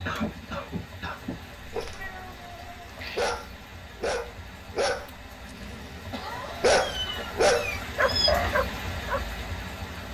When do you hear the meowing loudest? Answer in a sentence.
The loudest moment of the meowing is at 8 seconds.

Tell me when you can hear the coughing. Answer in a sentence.
The coughing can be heard from 0.1 to 1.4 s and from 6.1 to 7.4 s.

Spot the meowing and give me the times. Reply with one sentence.
You can hear the meowing from 1.9 to 3.4 s and from 6.8 to 8.6 s.